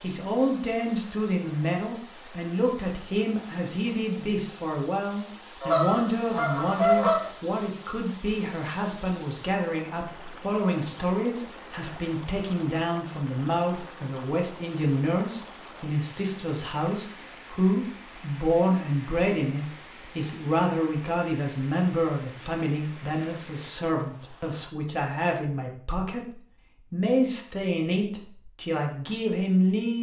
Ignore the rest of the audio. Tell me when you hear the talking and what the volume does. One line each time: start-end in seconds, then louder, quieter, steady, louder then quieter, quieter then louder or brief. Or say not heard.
0.0-29.9 steady.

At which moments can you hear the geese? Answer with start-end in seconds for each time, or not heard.
5.6-7.3.